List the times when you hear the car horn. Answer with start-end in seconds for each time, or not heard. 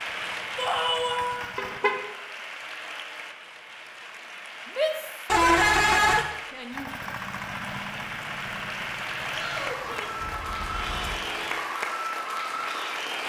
1.6-2.0, 5.2-6.2, 10.2-11.7.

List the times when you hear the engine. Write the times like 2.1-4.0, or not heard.
0.0-1.8, 6.7-11.6.